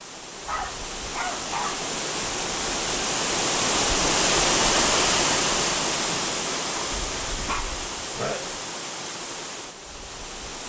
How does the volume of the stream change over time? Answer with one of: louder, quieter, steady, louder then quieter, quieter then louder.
louder then quieter.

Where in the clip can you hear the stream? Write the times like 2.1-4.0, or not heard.
0.0-10.6.